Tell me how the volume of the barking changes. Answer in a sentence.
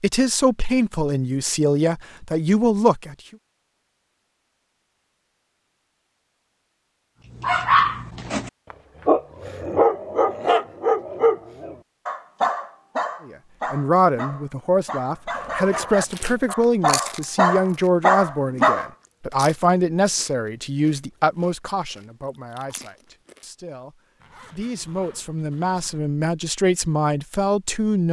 The loudness of the barking goes down, then up.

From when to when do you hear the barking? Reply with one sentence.
The barking can be heard from 7.3 to 18.9 s.